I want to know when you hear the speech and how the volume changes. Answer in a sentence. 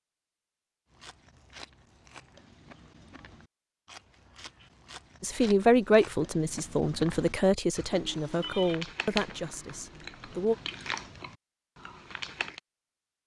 You can hear the speech from 5.2 to 10.6 s, getting quieter.